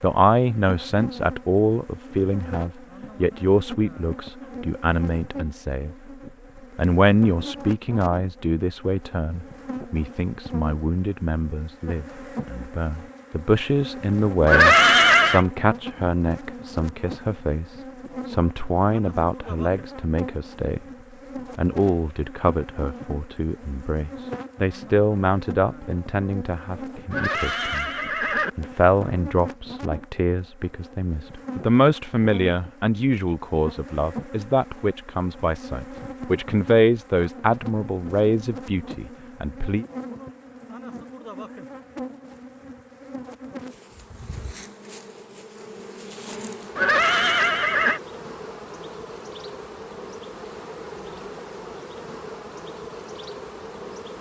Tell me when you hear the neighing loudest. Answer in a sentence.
The volume of the neighing peaks at 15 seconds.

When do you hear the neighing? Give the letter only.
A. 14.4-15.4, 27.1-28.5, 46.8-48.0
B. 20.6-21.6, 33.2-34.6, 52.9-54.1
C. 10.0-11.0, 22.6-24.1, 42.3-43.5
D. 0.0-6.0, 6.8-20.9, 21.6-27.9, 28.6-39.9
A.